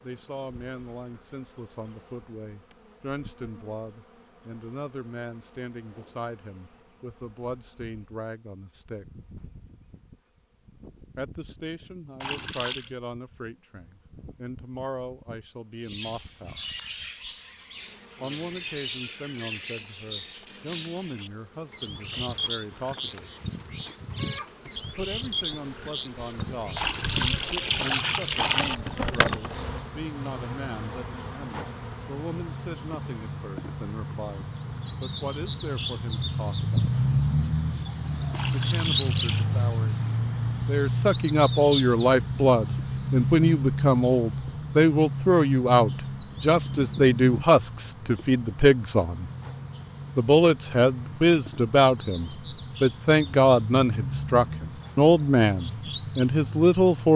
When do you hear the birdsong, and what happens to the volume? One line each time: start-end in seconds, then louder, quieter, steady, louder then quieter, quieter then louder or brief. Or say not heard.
15.8-57.1 louder then quieter.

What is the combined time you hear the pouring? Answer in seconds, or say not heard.
4 s.